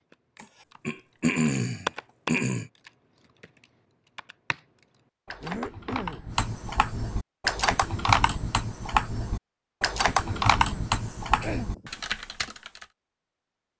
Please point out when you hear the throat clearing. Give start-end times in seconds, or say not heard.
0.4-2.7, 5.4-6.3, 10.2-12.0.